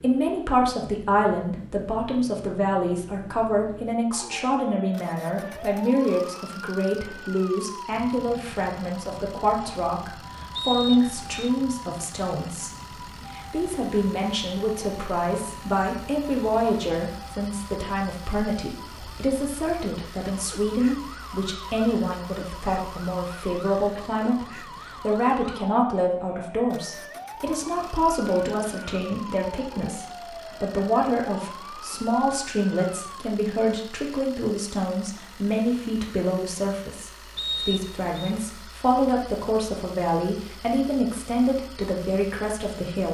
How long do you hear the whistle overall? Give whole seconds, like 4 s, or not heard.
2 s.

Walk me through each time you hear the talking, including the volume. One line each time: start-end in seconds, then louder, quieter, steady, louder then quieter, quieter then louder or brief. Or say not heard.
0.0-43.0 steady.